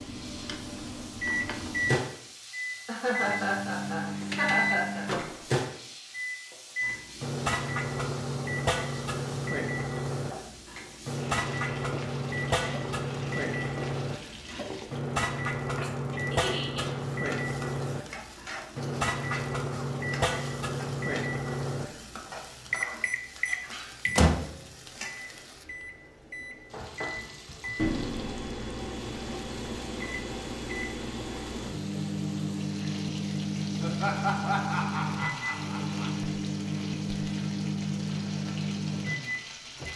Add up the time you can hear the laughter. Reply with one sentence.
The laughter can be heard for 5 seconds in total.